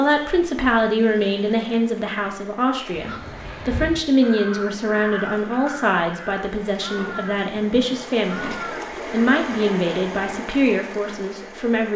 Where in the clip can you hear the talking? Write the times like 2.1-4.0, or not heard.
0.0-11.9.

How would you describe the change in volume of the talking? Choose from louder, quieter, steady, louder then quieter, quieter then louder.
steady.